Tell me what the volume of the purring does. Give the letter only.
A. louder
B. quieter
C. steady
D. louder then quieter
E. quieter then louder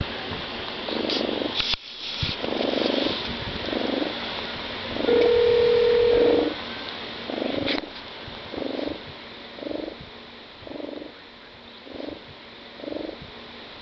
B.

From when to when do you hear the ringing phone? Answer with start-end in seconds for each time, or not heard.
5.0-6.5.